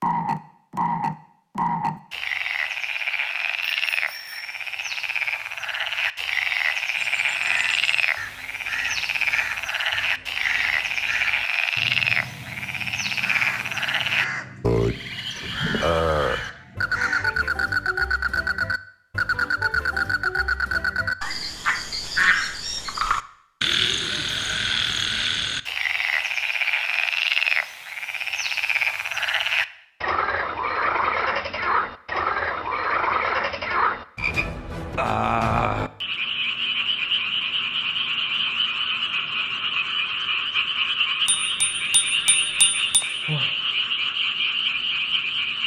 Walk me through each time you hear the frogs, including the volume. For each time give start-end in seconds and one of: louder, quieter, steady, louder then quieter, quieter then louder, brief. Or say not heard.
0.0-45.6 steady.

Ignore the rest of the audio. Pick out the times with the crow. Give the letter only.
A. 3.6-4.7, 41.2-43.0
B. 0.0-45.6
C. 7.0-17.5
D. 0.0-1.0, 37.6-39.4
C.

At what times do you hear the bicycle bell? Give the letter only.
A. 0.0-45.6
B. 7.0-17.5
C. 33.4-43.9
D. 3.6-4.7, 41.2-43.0
D.